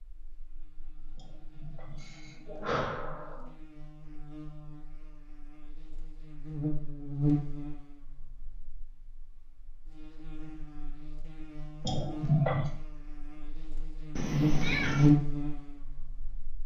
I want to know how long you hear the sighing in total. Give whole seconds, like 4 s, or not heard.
3 s.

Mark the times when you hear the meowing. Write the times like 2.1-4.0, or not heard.
14.2-15.2.